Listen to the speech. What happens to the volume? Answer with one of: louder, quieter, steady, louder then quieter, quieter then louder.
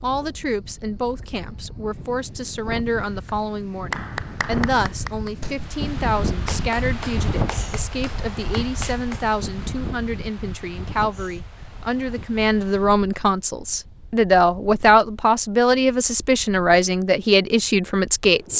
louder.